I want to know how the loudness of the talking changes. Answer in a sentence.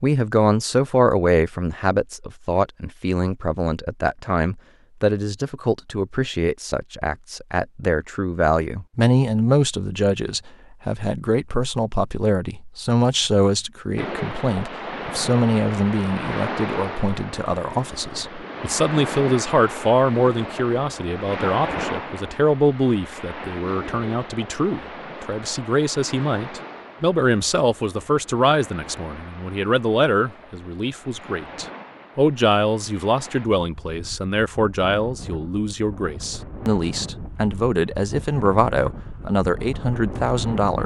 The loudness of the talking stays about the same.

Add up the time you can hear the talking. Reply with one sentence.
You can hear the talking for 41 seconds altogether.